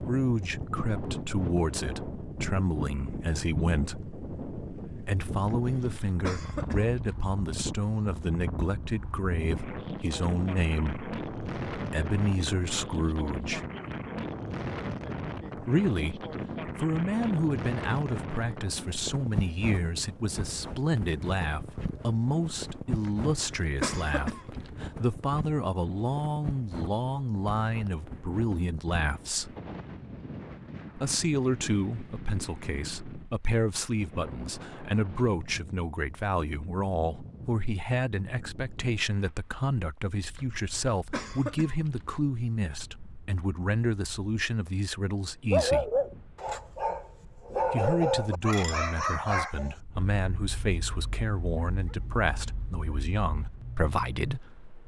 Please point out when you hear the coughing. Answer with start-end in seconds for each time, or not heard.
5.5-7.2, 23.0-24.8, 40.4-42.1.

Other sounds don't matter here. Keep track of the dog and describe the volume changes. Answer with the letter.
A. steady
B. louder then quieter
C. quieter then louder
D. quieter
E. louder
C.